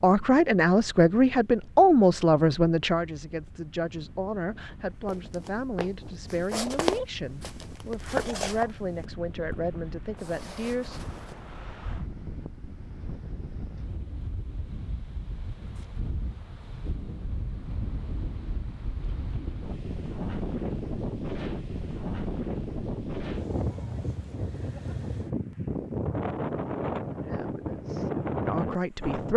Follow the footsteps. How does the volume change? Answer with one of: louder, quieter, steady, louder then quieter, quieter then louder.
louder then quieter.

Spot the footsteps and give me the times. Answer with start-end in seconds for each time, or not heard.
5.0-11.3.